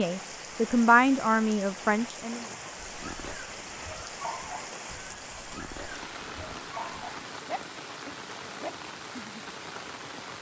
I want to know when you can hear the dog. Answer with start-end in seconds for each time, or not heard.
2.7-9.4.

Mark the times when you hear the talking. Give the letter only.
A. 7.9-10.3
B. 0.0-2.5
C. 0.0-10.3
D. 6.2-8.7
B.